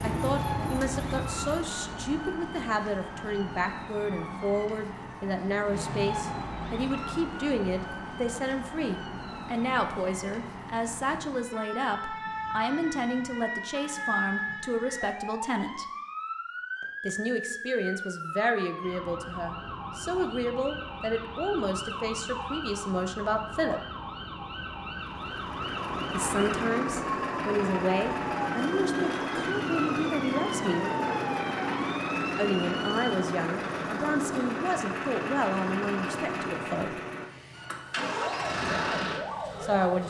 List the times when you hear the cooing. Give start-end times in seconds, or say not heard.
0.0-1.6.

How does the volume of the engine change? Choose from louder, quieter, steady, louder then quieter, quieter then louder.
steady.